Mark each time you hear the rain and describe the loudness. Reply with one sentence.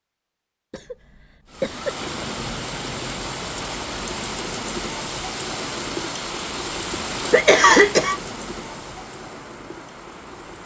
You can hear the rain from 1.5 to 10.6 s, getting quieter.